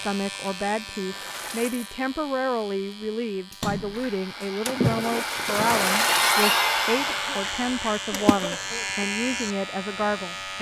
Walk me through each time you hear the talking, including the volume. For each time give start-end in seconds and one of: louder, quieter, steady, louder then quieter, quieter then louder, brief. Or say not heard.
0.0-10.5 steady.